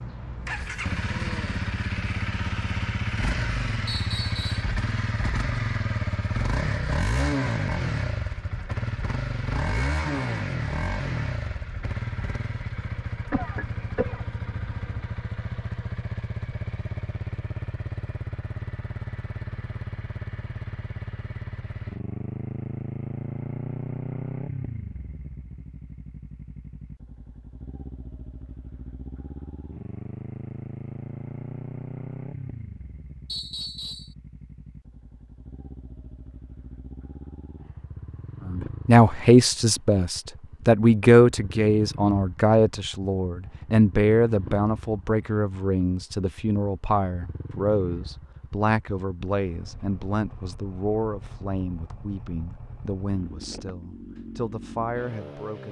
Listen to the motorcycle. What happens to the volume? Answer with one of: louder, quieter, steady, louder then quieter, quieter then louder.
quieter.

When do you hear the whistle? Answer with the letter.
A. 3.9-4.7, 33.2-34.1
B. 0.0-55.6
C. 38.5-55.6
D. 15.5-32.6
A.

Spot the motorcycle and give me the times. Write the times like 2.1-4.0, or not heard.
0.0-55.6.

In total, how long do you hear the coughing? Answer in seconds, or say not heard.
2 s.